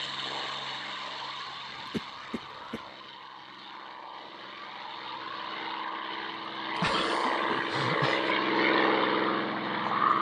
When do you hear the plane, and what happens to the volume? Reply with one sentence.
The plane can be heard from 0.0 to 10.1 s, getting quieter then louder.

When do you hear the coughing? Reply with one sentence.
You can hear the coughing from 1.7 to 2.9 s and from 6.8 to 8.3 s.